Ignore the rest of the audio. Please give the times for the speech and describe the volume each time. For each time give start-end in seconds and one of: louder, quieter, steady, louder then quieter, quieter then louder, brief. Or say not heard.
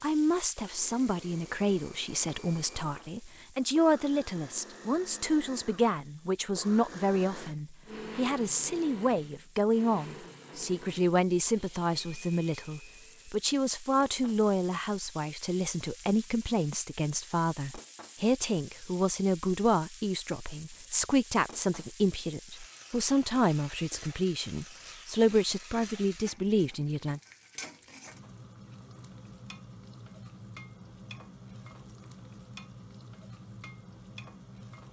0.0-27.2 steady.